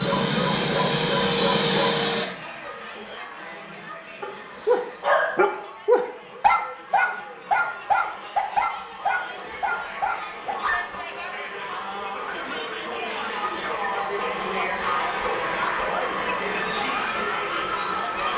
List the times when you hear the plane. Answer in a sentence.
You can hear the plane from 0.0 to 2.3 s.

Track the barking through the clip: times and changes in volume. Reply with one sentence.
You can hear the barking briefly from 0.0 to 1.9 s; and from 4.2 to 10.8 s, getting quieter.